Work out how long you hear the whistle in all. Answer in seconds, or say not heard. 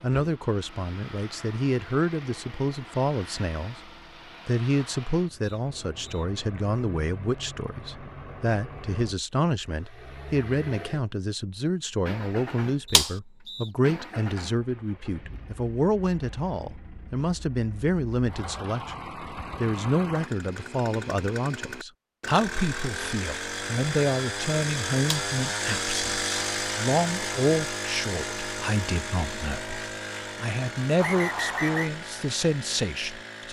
3 s.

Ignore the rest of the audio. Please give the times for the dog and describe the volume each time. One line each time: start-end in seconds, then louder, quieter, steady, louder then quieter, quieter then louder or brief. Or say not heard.
not heard.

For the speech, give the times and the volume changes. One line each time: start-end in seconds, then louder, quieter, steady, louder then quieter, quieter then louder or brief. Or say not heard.
0.0-33.4 steady.